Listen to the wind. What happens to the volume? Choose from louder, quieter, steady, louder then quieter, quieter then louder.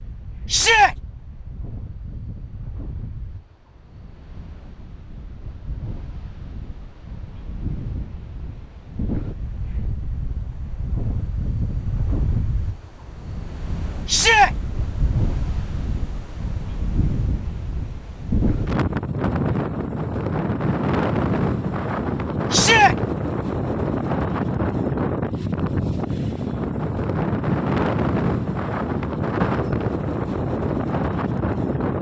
louder.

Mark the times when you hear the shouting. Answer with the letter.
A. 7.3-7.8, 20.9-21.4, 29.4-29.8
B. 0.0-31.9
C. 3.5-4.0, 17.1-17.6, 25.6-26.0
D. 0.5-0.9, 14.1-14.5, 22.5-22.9
D.